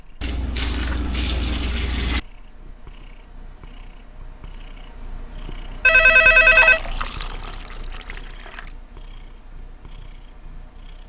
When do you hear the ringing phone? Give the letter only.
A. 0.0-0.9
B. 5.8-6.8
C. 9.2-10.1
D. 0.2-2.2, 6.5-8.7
B.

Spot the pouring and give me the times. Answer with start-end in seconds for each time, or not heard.
0.2-2.2, 6.5-8.7.